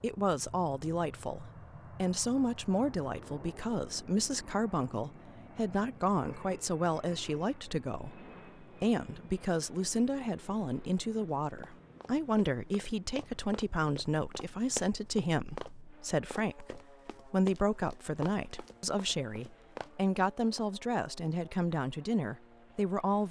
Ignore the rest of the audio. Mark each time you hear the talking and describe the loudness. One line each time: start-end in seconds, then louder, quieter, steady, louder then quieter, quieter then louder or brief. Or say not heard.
0.0-23.2 steady.